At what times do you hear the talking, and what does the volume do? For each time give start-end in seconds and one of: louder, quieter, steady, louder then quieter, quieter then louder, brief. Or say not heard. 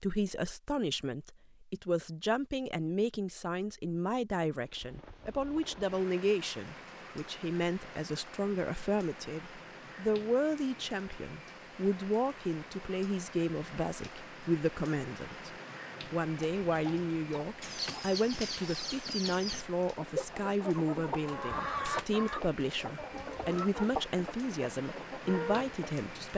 0.0-26.3 steady.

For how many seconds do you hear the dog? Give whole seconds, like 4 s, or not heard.
not heard.